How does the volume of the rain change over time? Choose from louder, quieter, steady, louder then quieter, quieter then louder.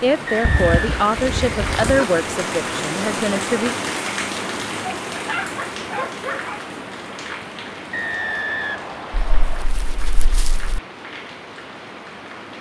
quieter.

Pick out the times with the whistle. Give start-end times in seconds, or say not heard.
0.2-0.9, 7.9-9.7.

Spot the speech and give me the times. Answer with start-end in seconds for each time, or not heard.
0.0-3.8.